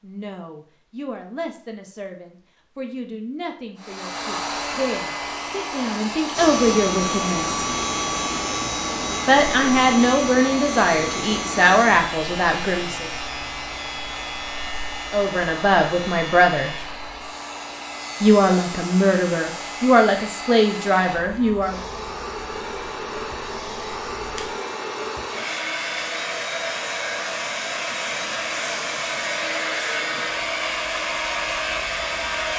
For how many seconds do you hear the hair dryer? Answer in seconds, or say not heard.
29 s.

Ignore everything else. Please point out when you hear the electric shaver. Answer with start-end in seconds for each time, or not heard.
6.3-32.5.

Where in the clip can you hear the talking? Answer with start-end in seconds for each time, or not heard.
0.0-7.7, 9.2-13.1, 15.1-16.7, 18.2-21.8.